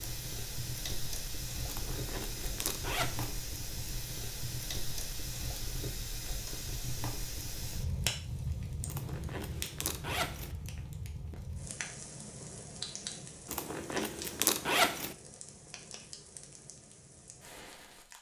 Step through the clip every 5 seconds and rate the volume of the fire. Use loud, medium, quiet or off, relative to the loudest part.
loud, loud, medium, quiet.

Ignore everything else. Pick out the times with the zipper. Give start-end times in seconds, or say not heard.
1.6-3.4, 8.8-10.6, 13.4-15.2.